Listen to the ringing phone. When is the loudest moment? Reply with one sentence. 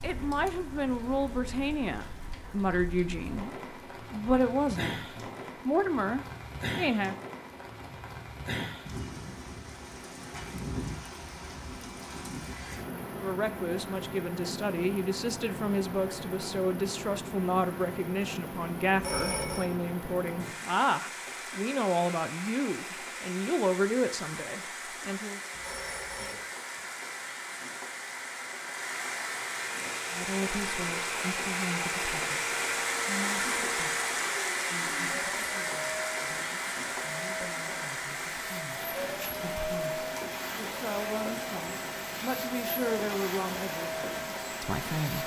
The volume of the ringing phone peaks at 19 seconds.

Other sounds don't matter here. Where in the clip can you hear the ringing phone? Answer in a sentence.
You can hear the ringing phone from 18.9 to 19.7 s and from 25.5 to 26.4 s.